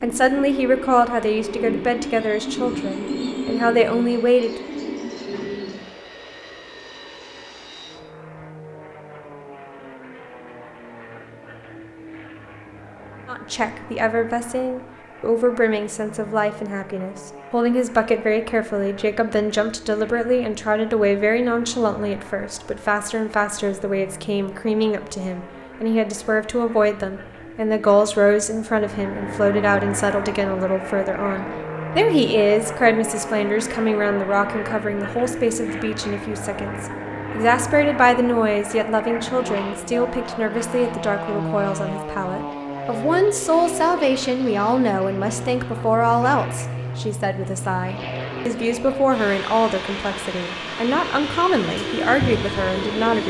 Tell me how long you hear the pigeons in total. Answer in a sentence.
You can hear the pigeons for 8 seconds altogether.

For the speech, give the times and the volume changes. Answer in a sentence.
You can hear the speech from 0.0 to 4.7 s, getting quieter then louder; and from 13.2 to 53.2 s, at a steady volume.